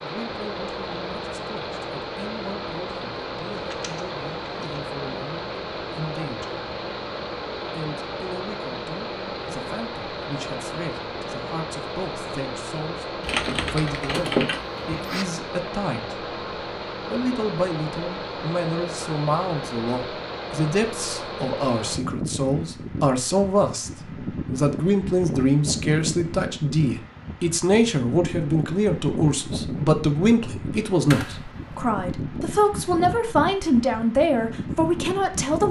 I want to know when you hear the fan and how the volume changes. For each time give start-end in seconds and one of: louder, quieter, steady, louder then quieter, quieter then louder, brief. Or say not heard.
0.0-35.6 steady.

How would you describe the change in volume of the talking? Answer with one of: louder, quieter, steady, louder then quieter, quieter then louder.
louder.